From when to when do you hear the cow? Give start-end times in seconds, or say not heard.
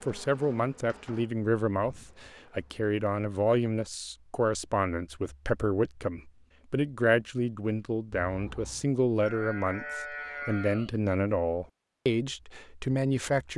9.2-10.9.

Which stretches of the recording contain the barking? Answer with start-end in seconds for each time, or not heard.
not heard.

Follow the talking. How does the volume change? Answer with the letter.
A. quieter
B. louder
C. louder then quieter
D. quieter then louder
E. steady
E.